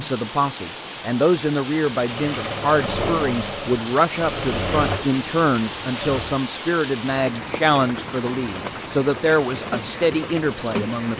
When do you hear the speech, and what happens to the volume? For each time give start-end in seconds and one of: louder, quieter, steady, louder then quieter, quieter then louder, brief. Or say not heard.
0.0-11.1 steady.